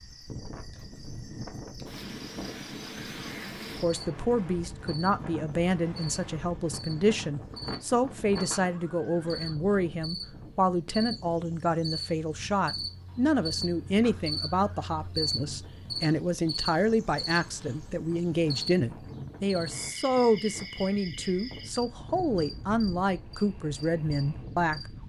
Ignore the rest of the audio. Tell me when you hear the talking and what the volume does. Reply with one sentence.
The talking can be heard from 3.8 to 24.9 s, at a steady volume.